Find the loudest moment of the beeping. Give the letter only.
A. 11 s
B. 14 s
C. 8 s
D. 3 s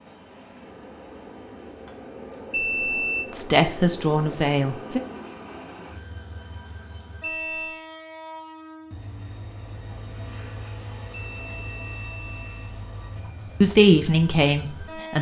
D.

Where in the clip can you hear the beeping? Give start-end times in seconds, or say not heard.
2.5-3.3, 7.2-7.8, 11.1-12.8.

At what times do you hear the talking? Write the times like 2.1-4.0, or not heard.
3.3-5.0, 13.6-15.1.